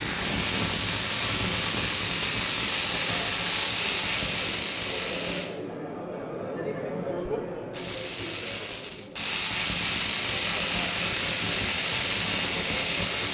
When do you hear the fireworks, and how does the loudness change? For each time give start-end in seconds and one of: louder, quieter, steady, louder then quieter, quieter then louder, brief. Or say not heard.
0.0-5.5 steady
7.7-13.3 louder.